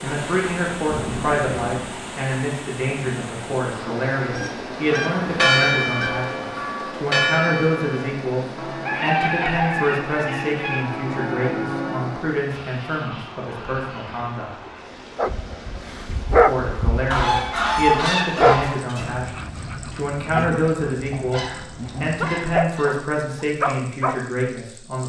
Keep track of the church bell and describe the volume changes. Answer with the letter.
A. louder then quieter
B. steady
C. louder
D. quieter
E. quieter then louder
E.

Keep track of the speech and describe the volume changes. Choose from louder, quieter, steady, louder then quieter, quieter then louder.
steady.